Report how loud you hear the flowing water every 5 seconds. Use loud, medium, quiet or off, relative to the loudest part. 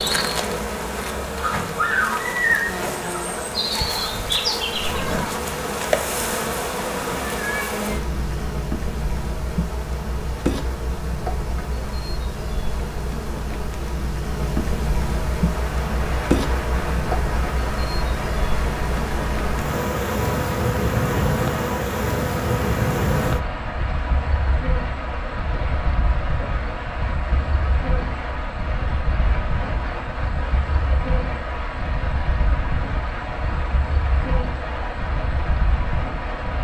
off, off, off, loud, loud, loud, loud, loud.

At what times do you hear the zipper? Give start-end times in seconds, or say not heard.
4.7-5.3.